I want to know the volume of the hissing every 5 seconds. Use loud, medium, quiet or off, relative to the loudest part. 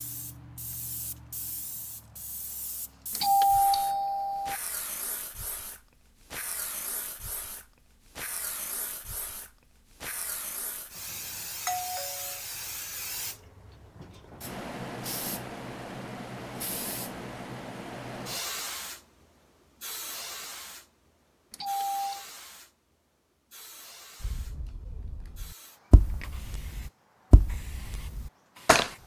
medium, medium, loud, loud, medium, quiet.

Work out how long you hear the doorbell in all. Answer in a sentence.
The doorbell can be heard for 3 seconds in total.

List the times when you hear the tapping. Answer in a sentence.
You can hear the tapping from 24.2 to 29.0 s.